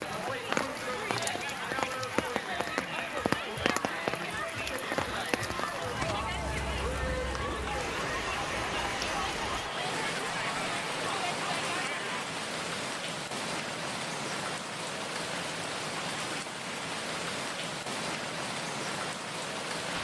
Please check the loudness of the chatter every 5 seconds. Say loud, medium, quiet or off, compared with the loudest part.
loud, loud, loud, off.